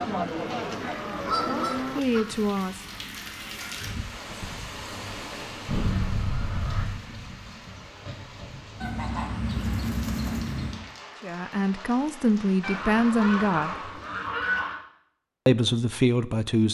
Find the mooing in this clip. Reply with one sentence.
You can hear the mooing from 0.0 to 2.0 s.